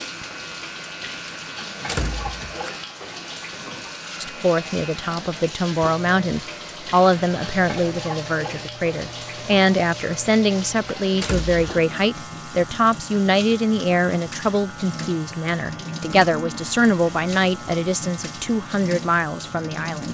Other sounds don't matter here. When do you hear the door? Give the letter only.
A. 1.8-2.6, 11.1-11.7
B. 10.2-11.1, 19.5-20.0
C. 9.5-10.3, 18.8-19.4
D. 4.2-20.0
A.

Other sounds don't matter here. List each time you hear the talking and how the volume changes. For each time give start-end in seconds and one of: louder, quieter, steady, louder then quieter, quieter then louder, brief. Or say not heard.
4.2-20.0 steady.